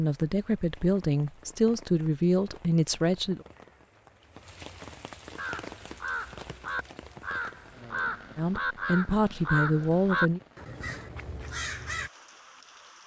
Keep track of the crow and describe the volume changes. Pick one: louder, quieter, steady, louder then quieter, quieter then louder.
louder then quieter.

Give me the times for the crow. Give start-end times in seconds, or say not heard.
5.3-12.1.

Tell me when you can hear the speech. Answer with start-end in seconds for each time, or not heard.
0.0-3.5, 8.3-10.4.